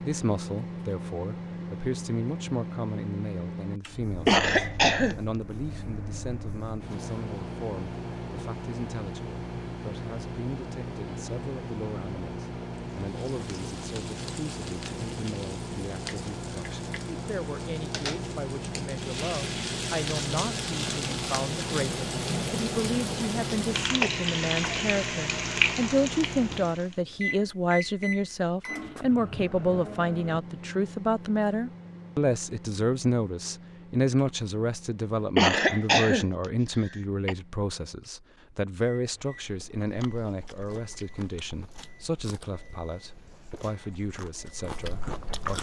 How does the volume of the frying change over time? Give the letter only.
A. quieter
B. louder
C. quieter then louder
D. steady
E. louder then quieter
B.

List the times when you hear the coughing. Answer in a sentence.
You can hear the coughing from 4.2 to 5.2 s and from 35.4 to 37.4 s.